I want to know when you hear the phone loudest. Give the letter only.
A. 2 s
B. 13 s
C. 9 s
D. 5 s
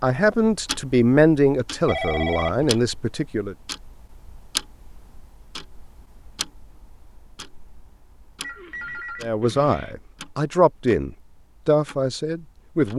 A.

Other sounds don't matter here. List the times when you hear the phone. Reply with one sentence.
You can hear the phone from 1.9 to 2.7 s and from 8.4 to 9.9 s.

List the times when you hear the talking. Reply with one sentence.
The talking can be heard from 0.0 to 3.5 s and from 9.2 to 12.9 s.